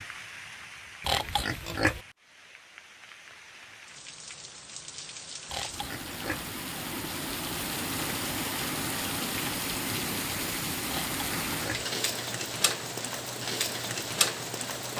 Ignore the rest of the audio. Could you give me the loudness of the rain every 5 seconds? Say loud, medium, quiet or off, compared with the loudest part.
quiet, loud, loud.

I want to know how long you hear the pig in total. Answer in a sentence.
You can hear the pig for 3 seconds altogether.